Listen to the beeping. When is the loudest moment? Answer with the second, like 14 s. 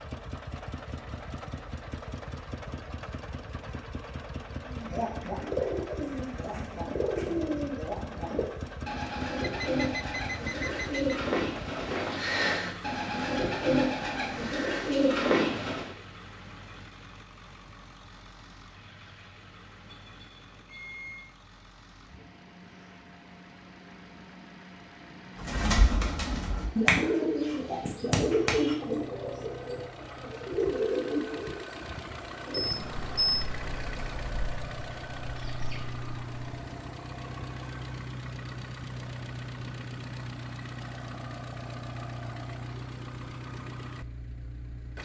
33 s.